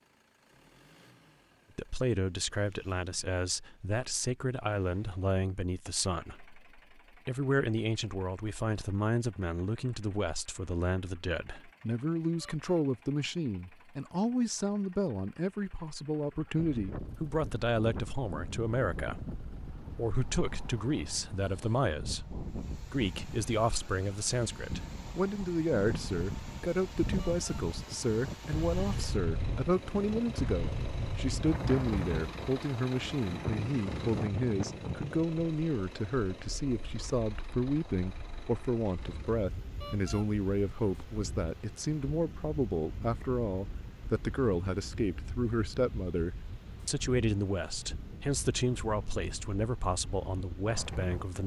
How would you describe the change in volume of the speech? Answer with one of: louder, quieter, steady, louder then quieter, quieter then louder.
steady.